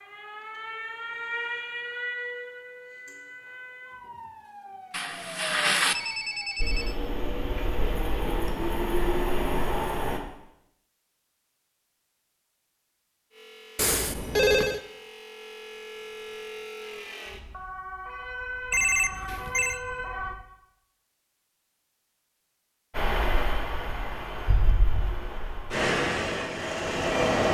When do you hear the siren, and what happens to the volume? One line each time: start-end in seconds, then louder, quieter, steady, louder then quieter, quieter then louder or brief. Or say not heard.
0.0-6.6 quieter
13.3-20.4 louder.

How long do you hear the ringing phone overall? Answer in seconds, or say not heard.
4 s.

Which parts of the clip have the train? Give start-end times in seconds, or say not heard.
6.5-10.2, 22.9-27.5.